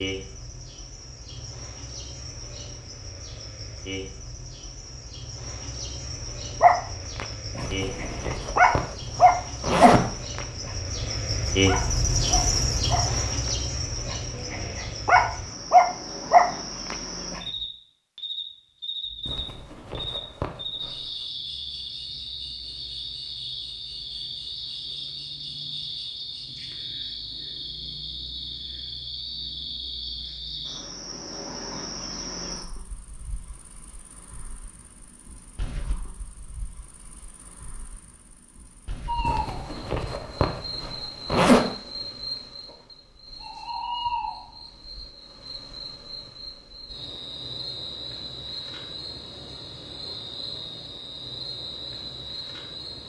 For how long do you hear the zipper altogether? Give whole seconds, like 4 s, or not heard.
7 s.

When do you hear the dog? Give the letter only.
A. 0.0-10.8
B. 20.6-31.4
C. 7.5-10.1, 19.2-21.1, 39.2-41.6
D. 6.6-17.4
D.